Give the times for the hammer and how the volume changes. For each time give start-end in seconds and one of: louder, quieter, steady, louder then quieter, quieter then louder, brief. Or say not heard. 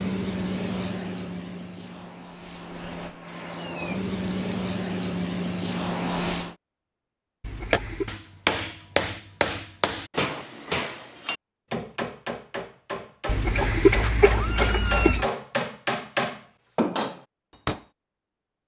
7.7-17.9 quieter then louder.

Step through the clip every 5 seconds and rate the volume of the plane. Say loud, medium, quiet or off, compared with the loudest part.
loud, loud, off, off.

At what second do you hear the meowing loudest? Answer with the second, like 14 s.
14 s.